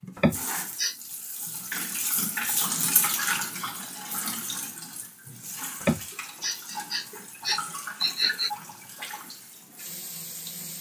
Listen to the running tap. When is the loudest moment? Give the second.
3 s.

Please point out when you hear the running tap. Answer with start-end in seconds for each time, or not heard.
0.0-10.7.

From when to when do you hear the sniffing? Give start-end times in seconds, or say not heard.
0.1-0.9, 5.8-8.5.